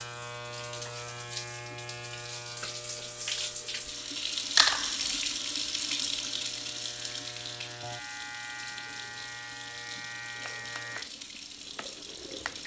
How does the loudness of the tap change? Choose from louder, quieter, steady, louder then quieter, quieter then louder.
louder then quieter.